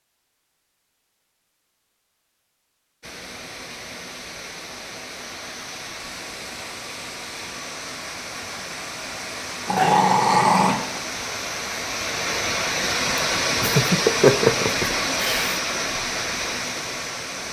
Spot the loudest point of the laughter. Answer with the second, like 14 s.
14 s.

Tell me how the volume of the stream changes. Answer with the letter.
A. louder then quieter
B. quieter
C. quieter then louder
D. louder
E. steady
D.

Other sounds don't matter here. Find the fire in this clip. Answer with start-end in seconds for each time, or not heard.
not heard.